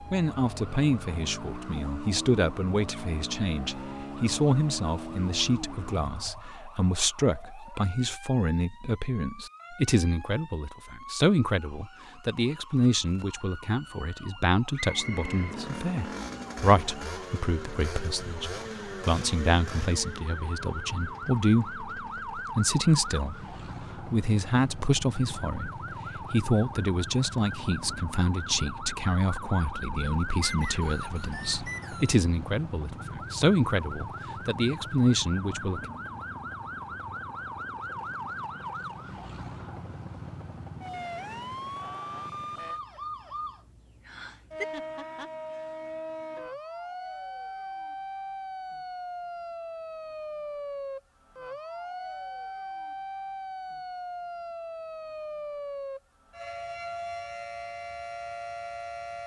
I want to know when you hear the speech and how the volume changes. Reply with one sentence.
The speech can be heard from 0.1 to 35.9 s, at a steady volume.